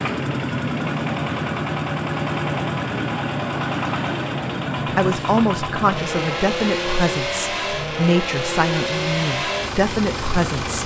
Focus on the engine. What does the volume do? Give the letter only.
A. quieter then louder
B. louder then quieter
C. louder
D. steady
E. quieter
D.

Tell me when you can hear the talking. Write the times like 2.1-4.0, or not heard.
5.0-10.8.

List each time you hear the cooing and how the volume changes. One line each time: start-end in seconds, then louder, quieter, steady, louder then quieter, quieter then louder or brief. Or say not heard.
not heard.